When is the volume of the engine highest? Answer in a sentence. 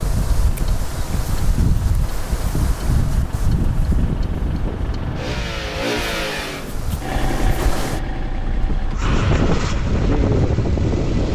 The loudest moment of the engine is at 6 seconds.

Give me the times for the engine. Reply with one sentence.
You can hear the engine from 0.0 to 11.3 s.